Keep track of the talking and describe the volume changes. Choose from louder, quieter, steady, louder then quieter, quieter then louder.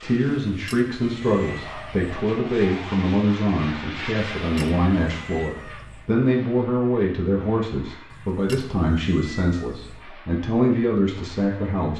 steady.